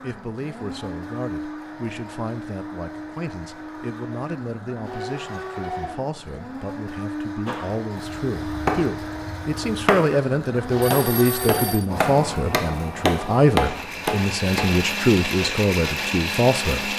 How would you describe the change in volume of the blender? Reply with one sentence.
The volume of the blender goes up.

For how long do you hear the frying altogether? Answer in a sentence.
You can't hear the frying here.